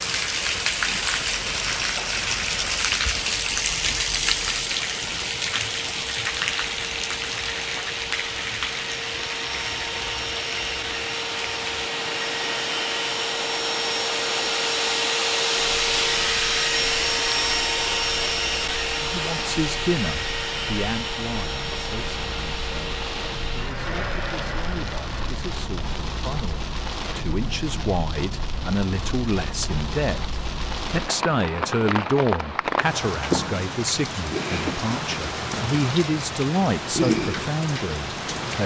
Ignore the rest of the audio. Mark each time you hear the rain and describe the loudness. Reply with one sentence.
The rain can be heard from 0.0 to 38.6 s, getting quieter then louder.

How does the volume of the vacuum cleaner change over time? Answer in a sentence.
The volume of the vacuum cleaner goes up, then down.